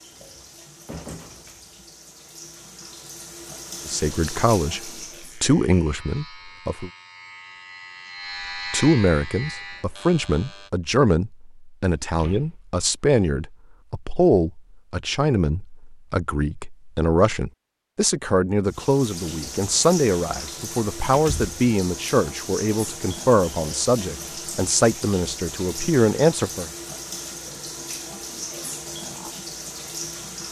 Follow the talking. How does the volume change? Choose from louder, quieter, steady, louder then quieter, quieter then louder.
steady.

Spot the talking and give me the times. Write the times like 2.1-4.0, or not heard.
3.9-6.9, 8.6-26.7.